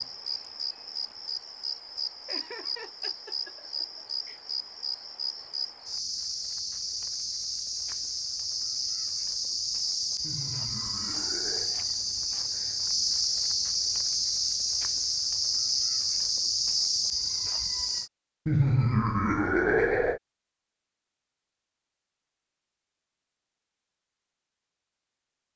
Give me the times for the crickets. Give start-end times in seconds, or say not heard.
0.0-18.1.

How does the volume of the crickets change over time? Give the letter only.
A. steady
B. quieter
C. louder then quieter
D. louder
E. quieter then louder
D.